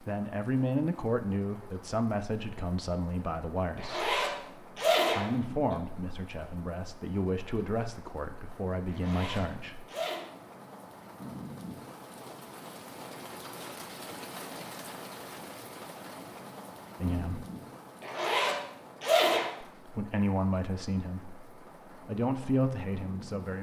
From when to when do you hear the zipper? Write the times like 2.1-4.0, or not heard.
3.8-5.8, 8.9-10.2, 18.0-19.5.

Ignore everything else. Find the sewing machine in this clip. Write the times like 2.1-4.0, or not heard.
not heard.